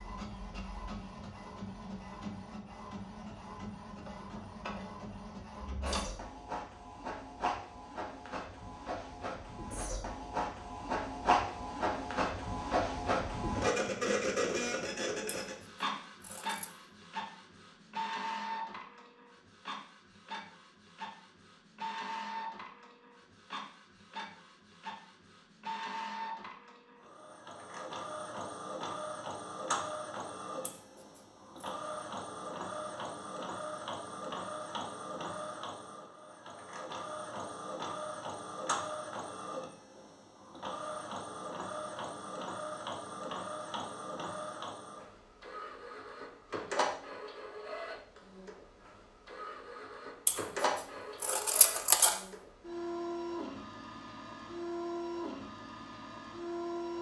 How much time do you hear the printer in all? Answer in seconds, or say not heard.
57 s.